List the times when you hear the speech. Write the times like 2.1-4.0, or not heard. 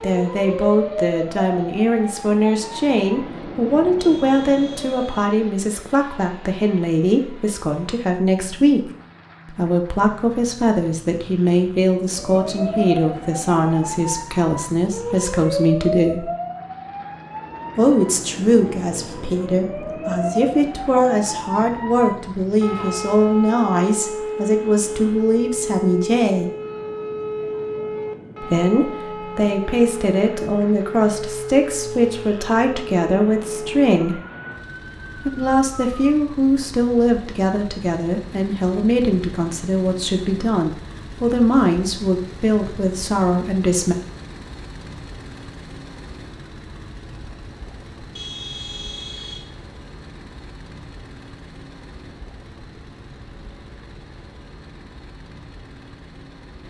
0.0-8.9, 9.5-16.3, 17.8-26.5, 28.4-34.2, 35.1-44.0.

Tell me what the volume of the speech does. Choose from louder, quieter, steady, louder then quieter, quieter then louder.
steady.